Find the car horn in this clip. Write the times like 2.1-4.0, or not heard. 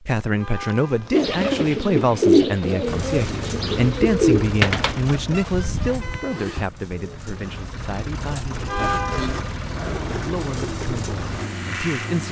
0.3-1.2, 5.3-6.5, 8.7-9.4.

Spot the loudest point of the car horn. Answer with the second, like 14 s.
9 s.